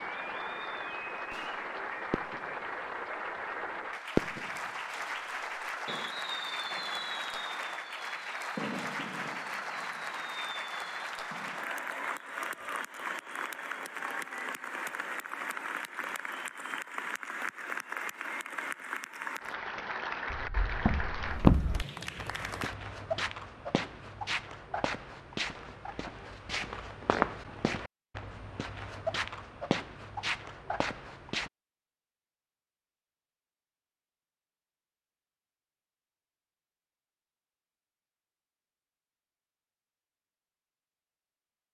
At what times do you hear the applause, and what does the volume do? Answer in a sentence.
You can hear the applause from 0.0 to 22.8 s, at a steady volume.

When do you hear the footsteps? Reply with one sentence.
The footsteps can be heard from 20.3 to 31.5 s.